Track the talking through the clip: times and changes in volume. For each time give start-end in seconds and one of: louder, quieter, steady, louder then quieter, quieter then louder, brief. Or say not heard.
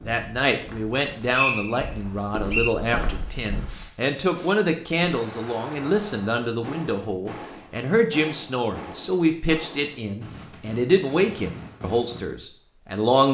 0.0-13.2 steady.